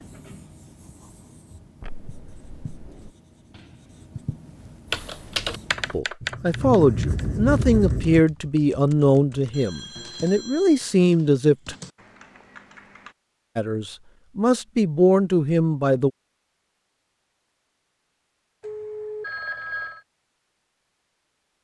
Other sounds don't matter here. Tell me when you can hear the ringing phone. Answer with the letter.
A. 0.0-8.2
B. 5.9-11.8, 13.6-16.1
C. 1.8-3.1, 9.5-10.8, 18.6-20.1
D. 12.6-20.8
C.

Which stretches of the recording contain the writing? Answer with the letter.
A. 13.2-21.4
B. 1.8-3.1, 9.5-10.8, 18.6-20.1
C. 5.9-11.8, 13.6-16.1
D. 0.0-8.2
D.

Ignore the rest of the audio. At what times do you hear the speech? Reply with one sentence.
The speech can be heard from 5.9 to 11.8 s and from 13.6 to 16.1 s.